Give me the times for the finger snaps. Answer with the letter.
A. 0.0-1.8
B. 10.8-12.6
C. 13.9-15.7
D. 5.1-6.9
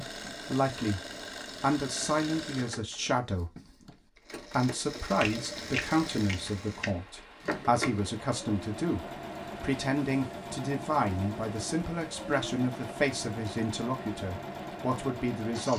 D.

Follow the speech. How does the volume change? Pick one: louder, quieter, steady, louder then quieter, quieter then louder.
steady.